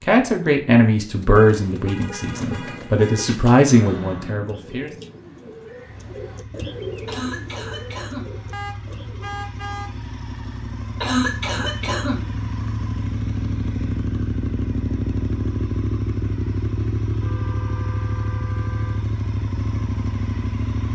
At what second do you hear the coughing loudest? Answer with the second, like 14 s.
11 s.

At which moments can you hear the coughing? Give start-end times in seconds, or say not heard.
7.0-8.3, 11.0-12.3.